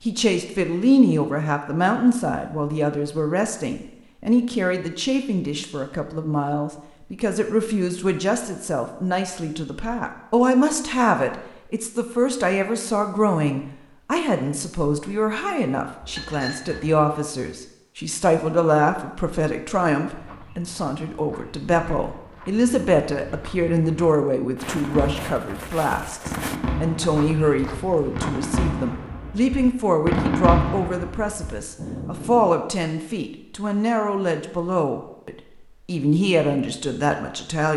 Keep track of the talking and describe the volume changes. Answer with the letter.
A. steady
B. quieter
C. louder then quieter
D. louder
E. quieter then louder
A.